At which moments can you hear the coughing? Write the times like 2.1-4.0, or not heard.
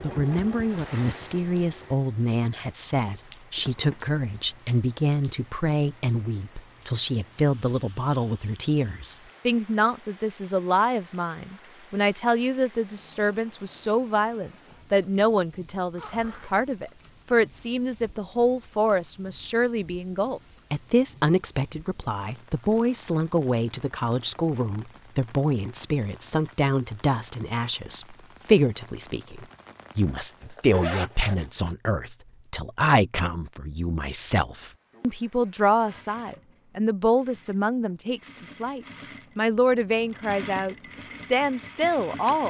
not heard.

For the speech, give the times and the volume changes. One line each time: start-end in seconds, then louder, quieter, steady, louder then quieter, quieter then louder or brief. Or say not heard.
0.0-42.4 steady.